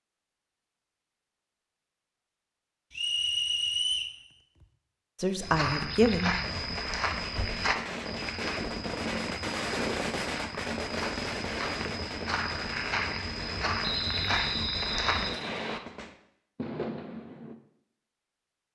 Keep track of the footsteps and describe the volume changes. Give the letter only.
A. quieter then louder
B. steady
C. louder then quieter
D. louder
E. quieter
A.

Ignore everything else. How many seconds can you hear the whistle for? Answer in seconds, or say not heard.
3 s.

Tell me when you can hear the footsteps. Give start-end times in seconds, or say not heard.
5.4-15.3.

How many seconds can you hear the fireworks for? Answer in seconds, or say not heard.
11 s.